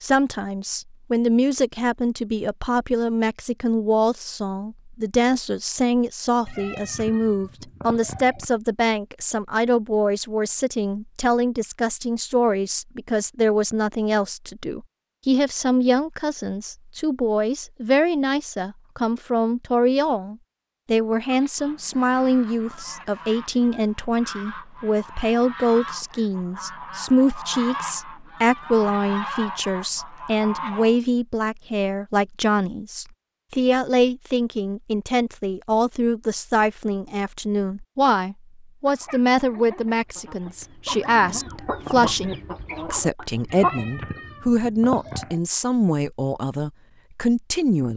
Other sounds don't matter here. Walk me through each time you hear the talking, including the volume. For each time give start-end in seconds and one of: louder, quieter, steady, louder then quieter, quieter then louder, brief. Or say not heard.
0.0-47.9 steady.